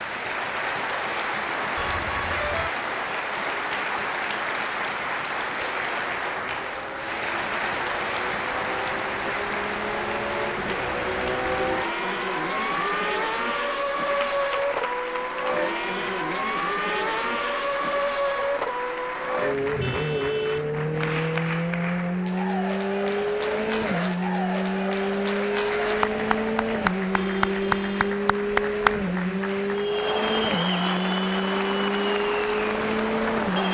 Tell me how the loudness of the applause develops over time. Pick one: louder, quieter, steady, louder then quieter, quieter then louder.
quieter then louder.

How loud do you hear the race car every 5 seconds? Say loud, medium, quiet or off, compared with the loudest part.
quiet, medium, loud, loud, loud, loud, loud.